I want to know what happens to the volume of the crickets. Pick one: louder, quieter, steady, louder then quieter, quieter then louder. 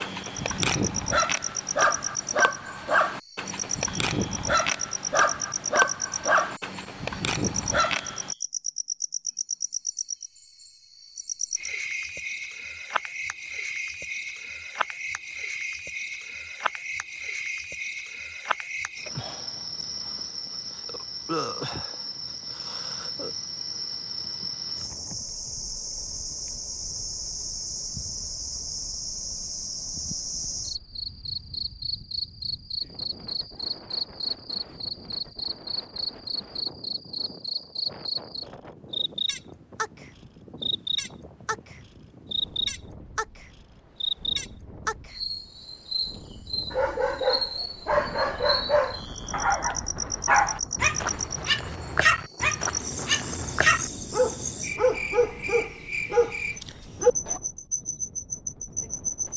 steady.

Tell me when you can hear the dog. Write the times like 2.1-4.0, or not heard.
0.0-8.3, 46.7-57.4.